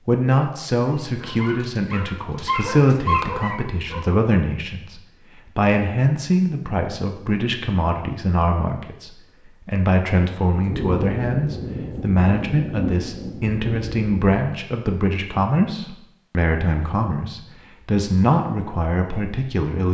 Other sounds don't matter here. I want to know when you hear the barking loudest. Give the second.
3 s.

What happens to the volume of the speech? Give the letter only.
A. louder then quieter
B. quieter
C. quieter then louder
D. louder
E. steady
E.